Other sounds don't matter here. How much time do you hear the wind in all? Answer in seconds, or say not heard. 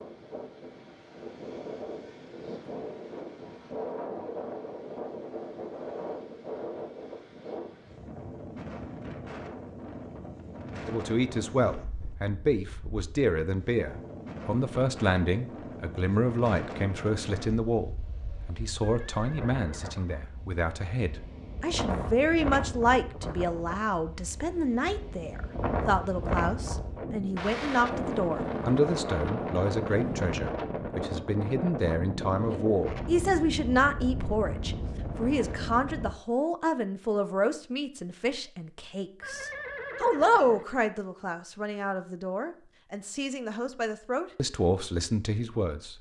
36 s.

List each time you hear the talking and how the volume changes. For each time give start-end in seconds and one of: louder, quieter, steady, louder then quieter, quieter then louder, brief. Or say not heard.
10.8-45.9 steady.